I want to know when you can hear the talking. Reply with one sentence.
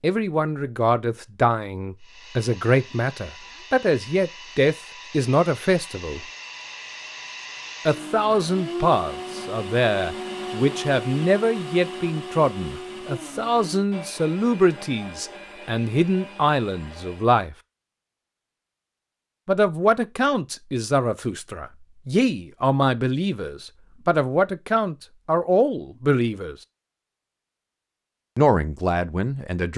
The talking can be heard from 0.0 to 6.2 s, from 7.8 to 17.6 s, from 19.4 to 26.6 s and from 28.4 to 29.7 s.